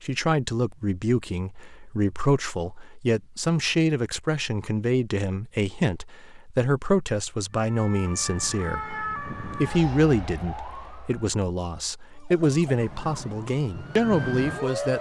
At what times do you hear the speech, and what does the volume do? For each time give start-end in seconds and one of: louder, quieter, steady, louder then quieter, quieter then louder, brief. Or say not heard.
0.0-14.9 steady.